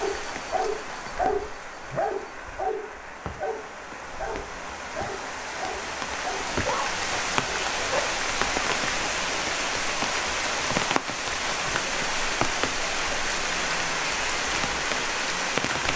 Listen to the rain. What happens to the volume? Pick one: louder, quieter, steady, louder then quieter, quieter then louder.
louder.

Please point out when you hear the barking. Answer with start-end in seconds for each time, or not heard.
0.0-8.0.